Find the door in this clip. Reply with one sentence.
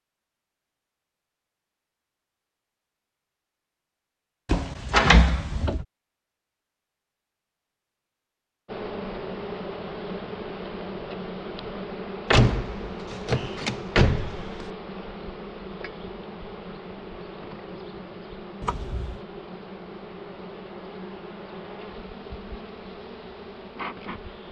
The door can be heard from 4.5 to 5.8 s, from 12.3 to 14.7 s and from 18.6 to 19.2 s.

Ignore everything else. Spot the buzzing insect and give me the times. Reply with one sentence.
You can hear the buzzing insect from 8.7 to 24.4 s.